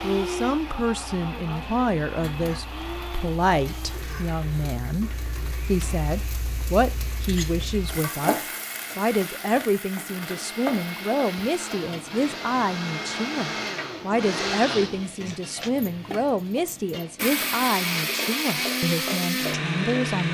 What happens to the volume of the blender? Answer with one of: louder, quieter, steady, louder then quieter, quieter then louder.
quieter then louder.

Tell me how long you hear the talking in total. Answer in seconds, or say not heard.
20 s.